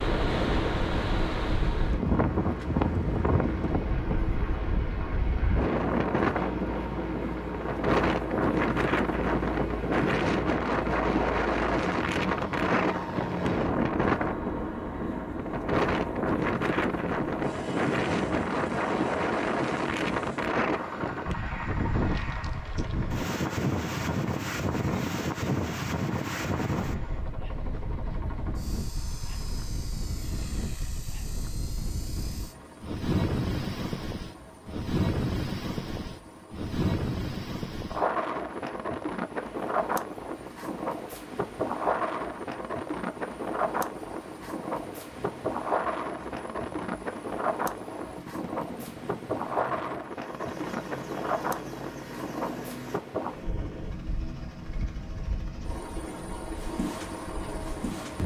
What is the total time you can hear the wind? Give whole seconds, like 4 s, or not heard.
58 s.